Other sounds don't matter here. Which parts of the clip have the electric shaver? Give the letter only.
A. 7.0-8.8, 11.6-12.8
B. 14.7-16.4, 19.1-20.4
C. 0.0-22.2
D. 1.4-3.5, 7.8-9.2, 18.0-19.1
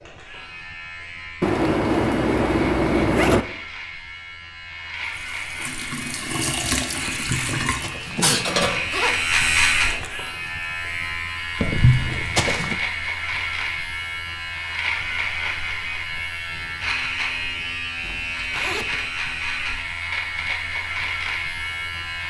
C.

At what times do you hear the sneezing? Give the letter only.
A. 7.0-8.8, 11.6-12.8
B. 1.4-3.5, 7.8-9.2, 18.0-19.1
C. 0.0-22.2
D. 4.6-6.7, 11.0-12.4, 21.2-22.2
A.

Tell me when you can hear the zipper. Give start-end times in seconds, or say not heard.
1.4-3.5, 7.8-9.2, 18.0-19.1.